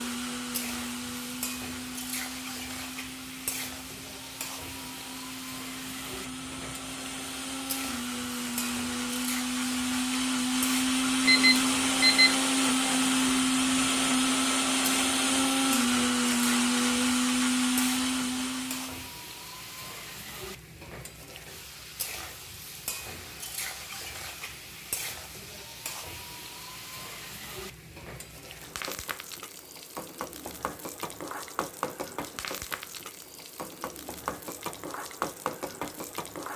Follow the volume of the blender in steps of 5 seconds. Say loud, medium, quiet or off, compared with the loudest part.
quiet, medium, loud, loud, off, off, off, off.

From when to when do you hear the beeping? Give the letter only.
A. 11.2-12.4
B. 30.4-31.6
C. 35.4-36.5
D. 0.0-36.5
A.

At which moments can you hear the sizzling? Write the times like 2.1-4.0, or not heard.
0.0-36.5.